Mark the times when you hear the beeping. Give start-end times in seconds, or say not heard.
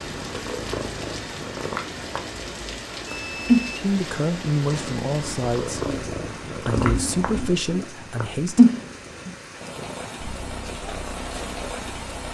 3.0-3.9, 6.8-7.6.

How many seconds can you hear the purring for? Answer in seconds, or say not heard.
12 s.